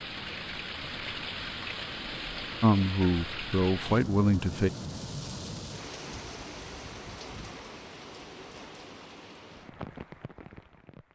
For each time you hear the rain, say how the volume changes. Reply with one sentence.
You can hear the rain from 0.0 to 11.1 s, getting quieter.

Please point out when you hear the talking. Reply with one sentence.
You can hear the talking from 2.6 to 4.7 s.